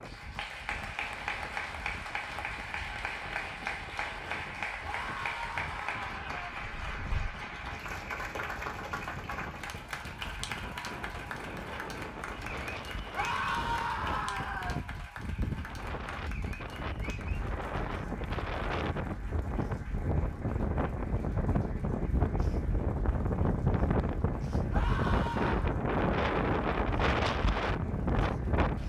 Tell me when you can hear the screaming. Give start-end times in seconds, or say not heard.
4.8-6.5, 13.1-14.8, 24.7-25.8.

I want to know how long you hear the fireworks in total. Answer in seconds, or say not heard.
not heard.